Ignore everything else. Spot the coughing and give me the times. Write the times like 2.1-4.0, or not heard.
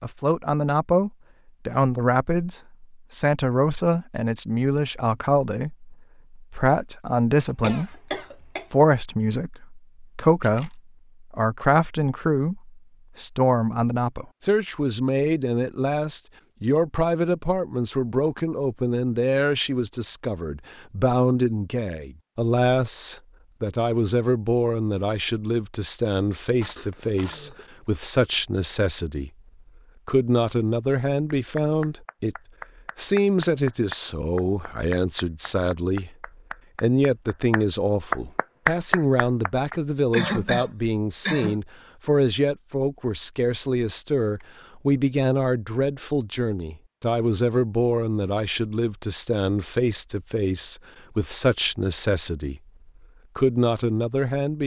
7.6-8.7, 26.8-27.6, 40.1-41.6.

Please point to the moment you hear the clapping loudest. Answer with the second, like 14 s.
39 s.